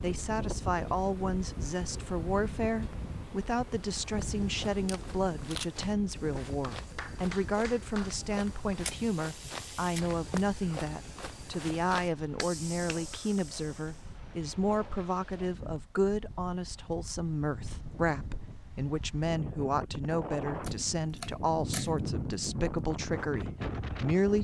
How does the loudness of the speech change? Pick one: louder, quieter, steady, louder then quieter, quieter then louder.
steady.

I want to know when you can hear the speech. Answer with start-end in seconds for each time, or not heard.
0.0-24.3.